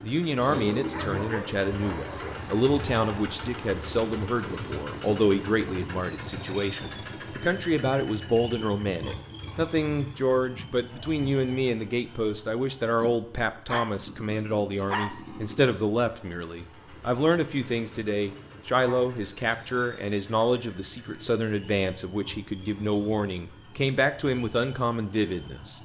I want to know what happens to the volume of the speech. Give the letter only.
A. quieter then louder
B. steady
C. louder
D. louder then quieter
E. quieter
B.